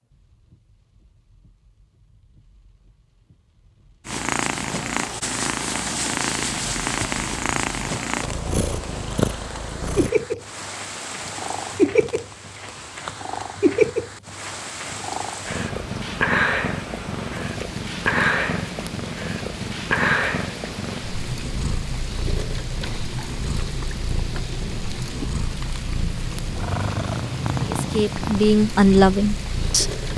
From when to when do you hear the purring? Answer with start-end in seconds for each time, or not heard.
4.0-30.1.